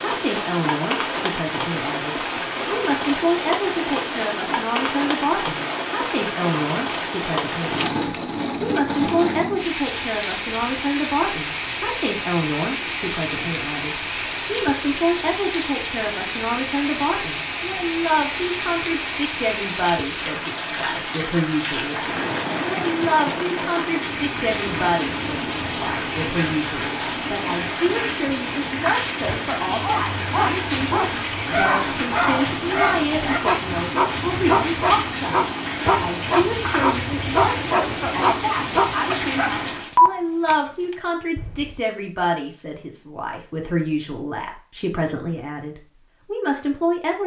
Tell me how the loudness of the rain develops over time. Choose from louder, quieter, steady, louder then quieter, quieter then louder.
steady.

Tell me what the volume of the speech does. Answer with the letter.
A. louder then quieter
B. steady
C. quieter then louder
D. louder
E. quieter
B.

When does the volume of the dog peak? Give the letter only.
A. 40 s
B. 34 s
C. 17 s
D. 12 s
A.